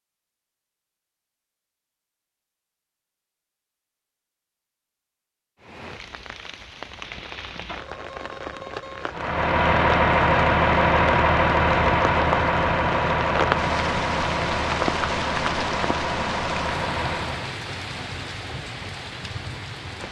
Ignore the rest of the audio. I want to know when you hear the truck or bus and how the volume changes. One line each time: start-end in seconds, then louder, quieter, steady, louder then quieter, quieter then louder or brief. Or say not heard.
9.1-17.6 quieter.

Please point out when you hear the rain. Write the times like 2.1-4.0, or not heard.
5.6-20.0.